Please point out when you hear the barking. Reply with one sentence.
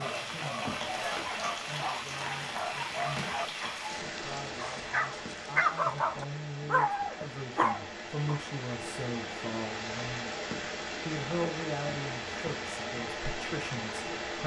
The barking can be heard from 0.0 to 8.4 s.